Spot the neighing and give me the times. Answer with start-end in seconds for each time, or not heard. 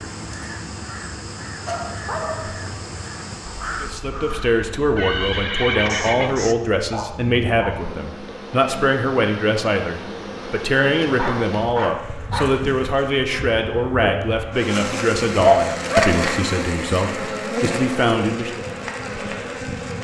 4.7-6.4.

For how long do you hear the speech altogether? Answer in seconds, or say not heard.
15 s.